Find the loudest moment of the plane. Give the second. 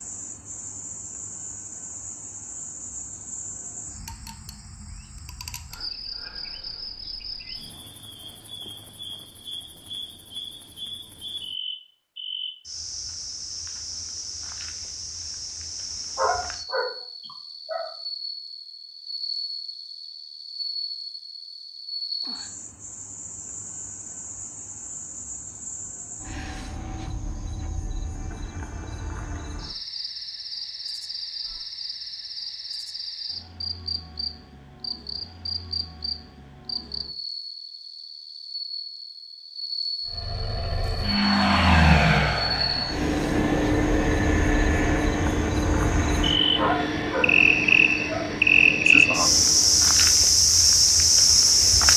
42 s.